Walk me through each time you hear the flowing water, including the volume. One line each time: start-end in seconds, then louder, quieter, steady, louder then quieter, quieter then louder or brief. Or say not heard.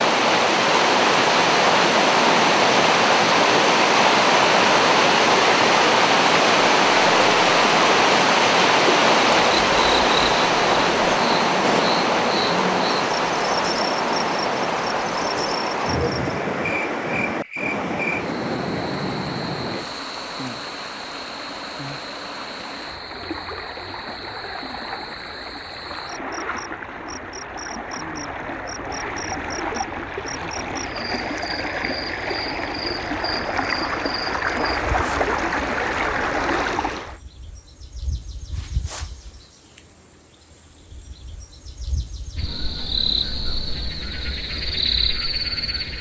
0.0-37.1 quieter then louder.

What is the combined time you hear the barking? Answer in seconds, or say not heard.
not heard.